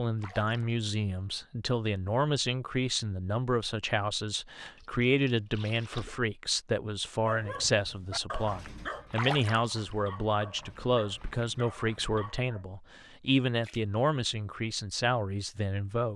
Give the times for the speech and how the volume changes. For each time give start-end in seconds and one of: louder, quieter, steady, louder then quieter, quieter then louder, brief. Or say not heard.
0.0-16.1 steady.